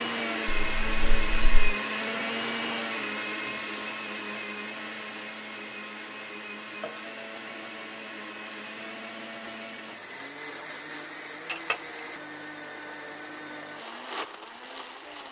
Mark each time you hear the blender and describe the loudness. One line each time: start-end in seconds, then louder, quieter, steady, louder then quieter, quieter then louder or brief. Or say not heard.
0.0-15.2 quieter.